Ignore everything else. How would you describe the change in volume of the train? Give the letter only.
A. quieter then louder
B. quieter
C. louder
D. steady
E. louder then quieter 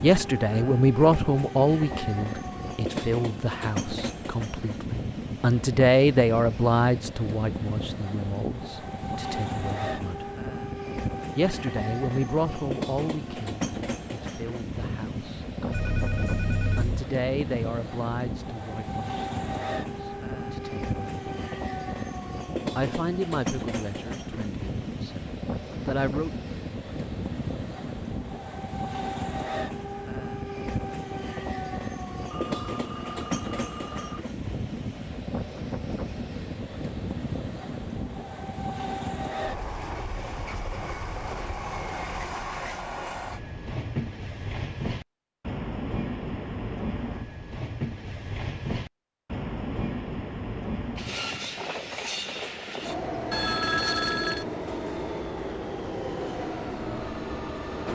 D.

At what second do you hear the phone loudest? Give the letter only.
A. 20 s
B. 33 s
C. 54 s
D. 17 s
C.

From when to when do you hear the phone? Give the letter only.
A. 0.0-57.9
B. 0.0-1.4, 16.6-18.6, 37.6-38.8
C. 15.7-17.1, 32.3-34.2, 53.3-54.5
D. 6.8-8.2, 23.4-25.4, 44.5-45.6
C.